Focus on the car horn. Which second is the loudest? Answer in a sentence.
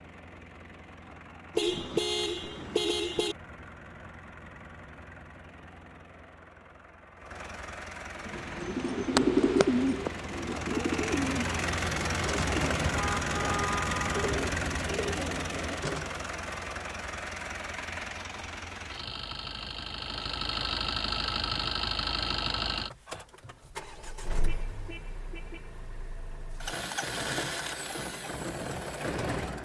The volume of the car horn peaks at 2 seconds.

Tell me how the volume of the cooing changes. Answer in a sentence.
The loudness of the cooing goes down.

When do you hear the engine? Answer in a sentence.
The engine can be heard from 0.0 to 29.6 s.